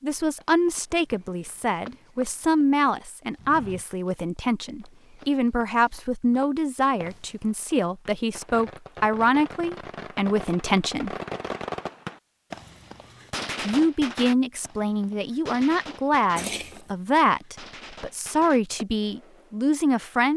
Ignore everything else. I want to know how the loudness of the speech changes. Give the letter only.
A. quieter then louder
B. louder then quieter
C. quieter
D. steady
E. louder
D.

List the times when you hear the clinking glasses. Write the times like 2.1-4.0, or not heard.
16.4-16.9.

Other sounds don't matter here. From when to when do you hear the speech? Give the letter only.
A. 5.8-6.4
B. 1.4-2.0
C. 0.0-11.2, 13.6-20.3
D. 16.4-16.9
C.